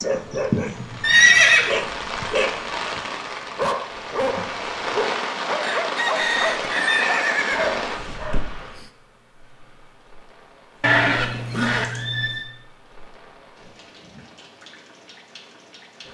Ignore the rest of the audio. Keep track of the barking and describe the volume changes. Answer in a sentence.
The volume of the barking stays about the same.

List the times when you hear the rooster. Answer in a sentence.
The rooster can be heard from 5.6 to 7.1 s.